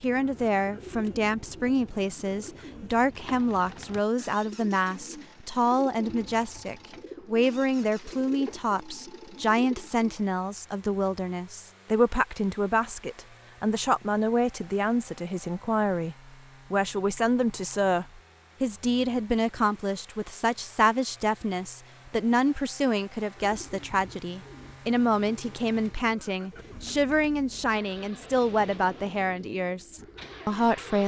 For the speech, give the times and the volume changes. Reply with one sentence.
You can hear the speech from 0.0 to 31.0 s, at a steady volume.